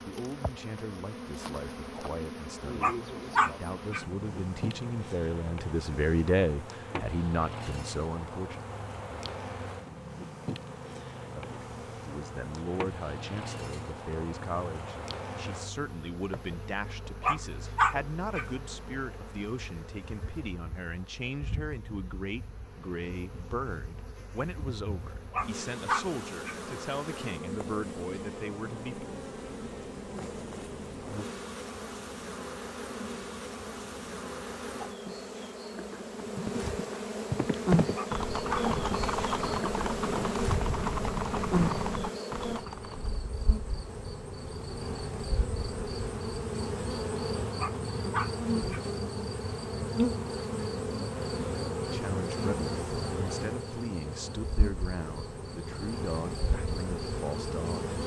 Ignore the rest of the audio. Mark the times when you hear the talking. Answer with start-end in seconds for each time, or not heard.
0.0-8.6, 11.3-29.1, 51.9-58.0.